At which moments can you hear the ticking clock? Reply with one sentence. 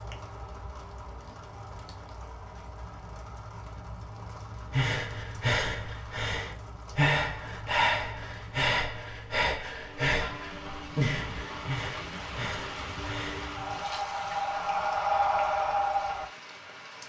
You can't hear the ticking clock here.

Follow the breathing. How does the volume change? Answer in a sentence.
The loudness of the breathing goes down, then up.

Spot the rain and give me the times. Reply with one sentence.
The rain can be heard from 0.0 to 17.0 s.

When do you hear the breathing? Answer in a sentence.
The breathing can be heard from 4.7 to 16.3 s.